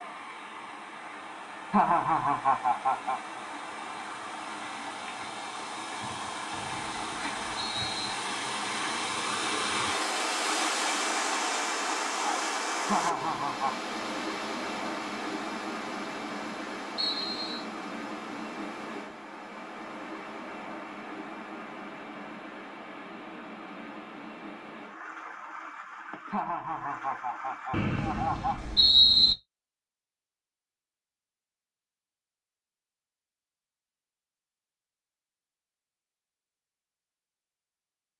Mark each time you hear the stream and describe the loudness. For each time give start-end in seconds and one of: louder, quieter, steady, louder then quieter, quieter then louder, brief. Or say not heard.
0.0-28.9 louder then quieter.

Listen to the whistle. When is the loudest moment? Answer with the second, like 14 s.
29 s.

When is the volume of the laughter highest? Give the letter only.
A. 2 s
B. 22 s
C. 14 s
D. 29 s
A.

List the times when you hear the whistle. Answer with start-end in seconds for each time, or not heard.
6.5-8.2, 16.9-17.6, 27.7-29.4.